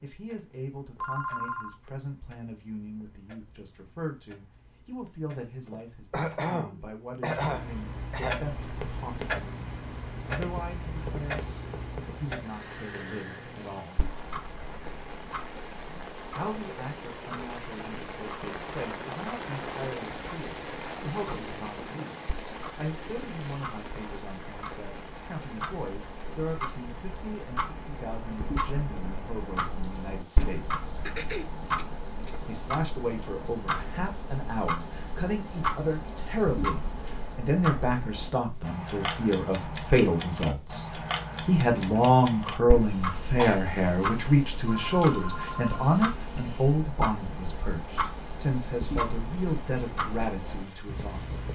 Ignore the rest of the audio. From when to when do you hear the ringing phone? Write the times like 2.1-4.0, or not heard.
1.0-1.8, 44.6-46.0.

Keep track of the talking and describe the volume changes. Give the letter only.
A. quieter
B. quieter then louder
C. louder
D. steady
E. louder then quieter
C.